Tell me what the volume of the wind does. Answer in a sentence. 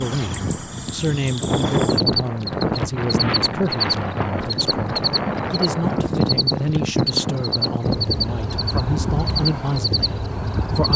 The volume of the wind stays about the same.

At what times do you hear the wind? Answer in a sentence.
You can hear the wind from 0.0 to 10.9 s.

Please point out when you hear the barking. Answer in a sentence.
You can't hear the barking here.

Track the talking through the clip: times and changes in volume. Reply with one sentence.
You can hear the talking from 0.0 to 10.9 s, at a steady volume.